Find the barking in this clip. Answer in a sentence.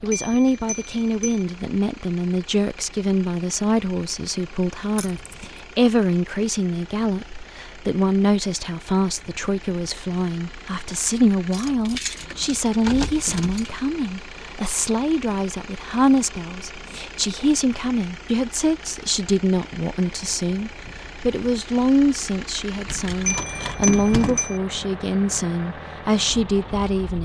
The barking can't be heard in this clip.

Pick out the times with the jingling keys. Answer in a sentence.
The jingling keys can be heard from 5.0 to 5.5 s, from 11.5 to 13.8 s and from 22.9 to 24.4 s.